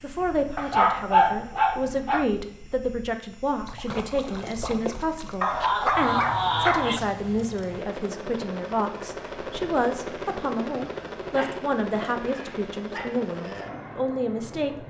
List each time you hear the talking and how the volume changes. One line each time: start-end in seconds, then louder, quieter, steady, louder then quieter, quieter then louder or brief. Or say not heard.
0.0-14.8 steady.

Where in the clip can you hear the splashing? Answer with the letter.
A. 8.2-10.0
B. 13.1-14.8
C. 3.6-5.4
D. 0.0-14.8
C.